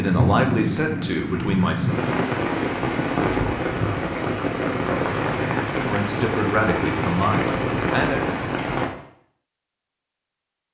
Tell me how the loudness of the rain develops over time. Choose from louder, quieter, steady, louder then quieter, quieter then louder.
steady.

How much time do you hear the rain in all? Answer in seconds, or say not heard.
9 s.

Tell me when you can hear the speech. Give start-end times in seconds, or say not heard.
0.0-1.9, 5.7-8.2.